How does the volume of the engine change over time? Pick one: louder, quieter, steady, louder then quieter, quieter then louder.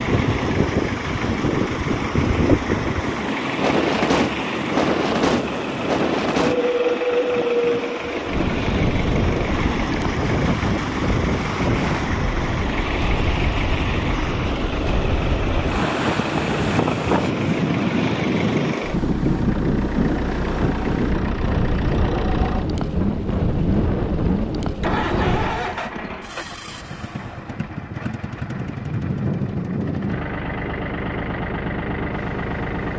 steady.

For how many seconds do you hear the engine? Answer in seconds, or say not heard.
33 s.